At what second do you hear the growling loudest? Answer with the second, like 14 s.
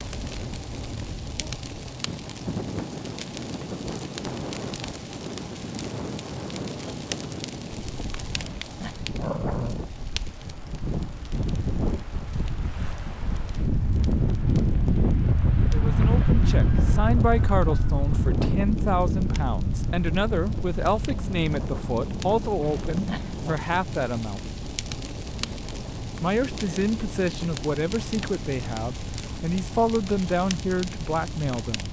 9 s.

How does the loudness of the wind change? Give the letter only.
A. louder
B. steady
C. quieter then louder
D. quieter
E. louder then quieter
E.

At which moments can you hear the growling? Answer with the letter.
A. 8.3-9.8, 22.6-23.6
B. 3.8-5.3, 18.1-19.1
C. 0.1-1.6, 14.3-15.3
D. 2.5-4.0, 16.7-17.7
A.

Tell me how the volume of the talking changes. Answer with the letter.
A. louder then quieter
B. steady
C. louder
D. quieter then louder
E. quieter
B.